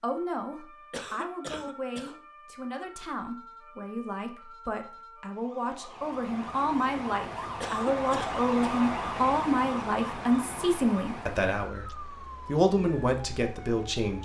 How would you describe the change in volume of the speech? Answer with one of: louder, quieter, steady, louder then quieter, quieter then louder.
louder.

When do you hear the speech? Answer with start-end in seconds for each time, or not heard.
0.0-14.2.